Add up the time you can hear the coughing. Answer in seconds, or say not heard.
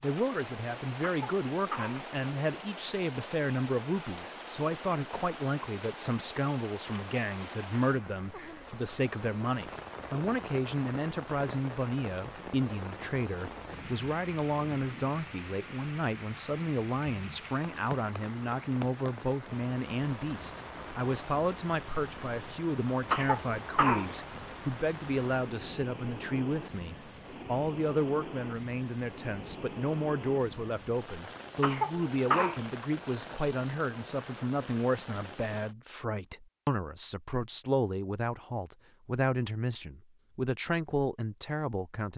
3 s.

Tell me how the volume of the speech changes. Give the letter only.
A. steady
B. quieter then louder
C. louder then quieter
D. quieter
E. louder
A.